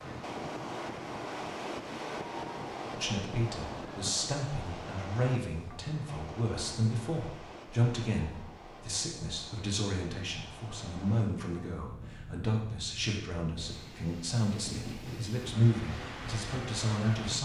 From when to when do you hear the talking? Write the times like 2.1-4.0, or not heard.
2.9-17.3.